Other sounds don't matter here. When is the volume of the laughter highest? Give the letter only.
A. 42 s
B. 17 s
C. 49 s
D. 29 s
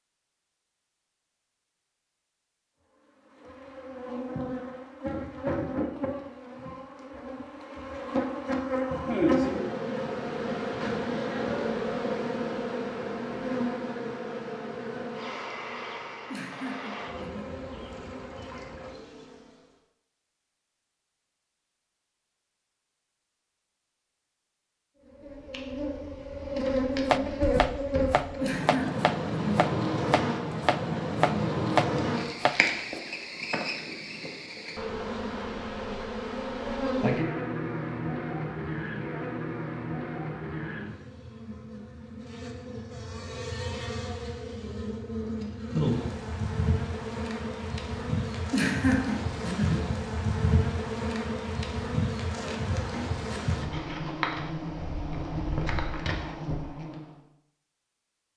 C.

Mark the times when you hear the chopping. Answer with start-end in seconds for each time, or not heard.
27.1-33.0.